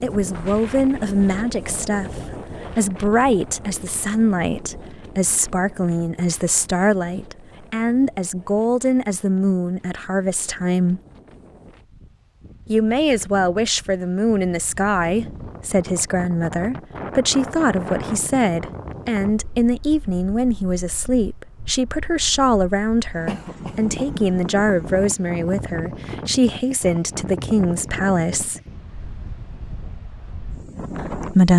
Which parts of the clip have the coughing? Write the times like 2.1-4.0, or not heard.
23.2-24.1.